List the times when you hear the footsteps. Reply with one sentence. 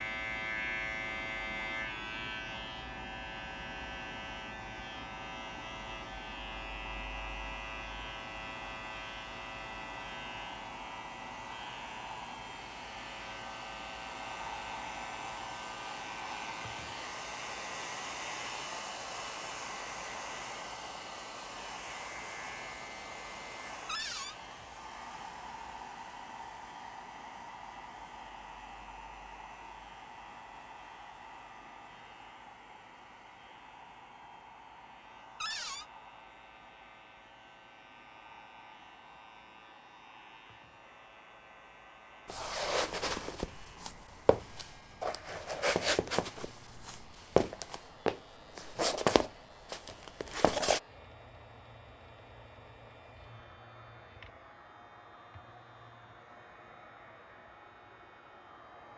The footsteps can be heard from 42.2 to 50.8 s.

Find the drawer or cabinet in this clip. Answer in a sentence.
The drawer or cabinet can be heard from 23.9 to 24.4 s and from 35.4 to 35.9 s.